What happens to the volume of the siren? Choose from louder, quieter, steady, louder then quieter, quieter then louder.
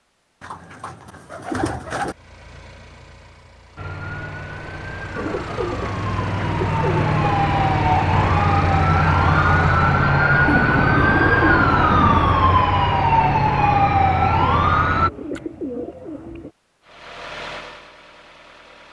louder.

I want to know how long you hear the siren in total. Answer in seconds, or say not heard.
11 s.